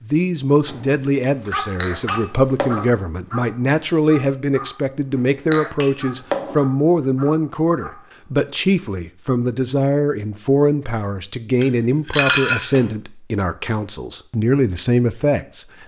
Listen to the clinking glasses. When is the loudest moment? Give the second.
12 s.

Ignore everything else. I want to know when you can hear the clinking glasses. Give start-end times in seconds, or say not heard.
1.8-2.9, 5.5-6.6, 11.6-12.8.